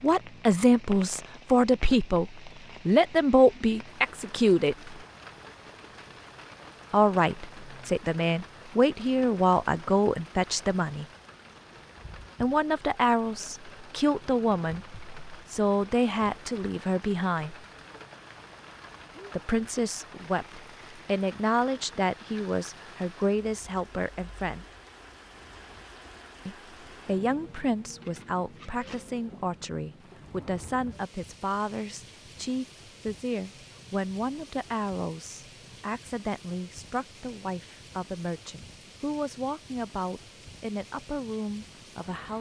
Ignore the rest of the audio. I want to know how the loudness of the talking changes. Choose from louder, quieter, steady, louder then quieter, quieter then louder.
quieter.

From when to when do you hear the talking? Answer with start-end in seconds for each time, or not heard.
0.0-5.0, 6.9-11.1, 12.4-17.6, 19.3-24.6, 26.4-42.3.